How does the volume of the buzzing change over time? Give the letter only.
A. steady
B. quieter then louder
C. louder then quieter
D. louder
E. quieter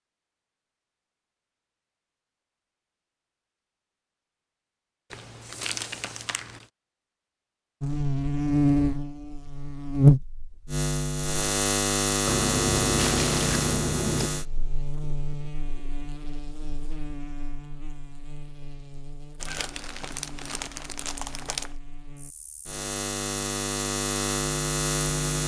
B.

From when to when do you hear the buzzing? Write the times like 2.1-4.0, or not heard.
7.8-25.4.